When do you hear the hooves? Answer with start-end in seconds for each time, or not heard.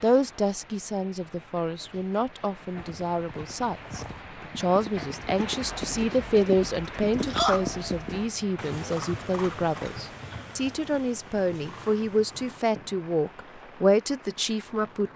2.6-13.8.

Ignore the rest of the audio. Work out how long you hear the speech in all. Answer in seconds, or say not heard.
15 s.